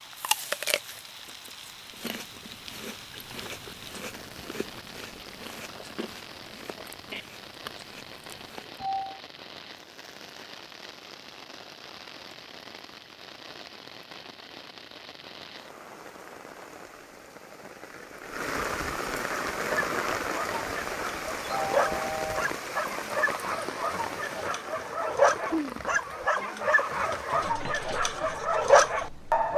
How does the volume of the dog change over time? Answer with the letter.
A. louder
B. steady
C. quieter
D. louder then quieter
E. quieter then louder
A.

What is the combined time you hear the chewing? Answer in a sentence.
You can hear the chewing for 9 seconds altogether.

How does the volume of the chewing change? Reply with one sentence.
The volume of the chewing goes down.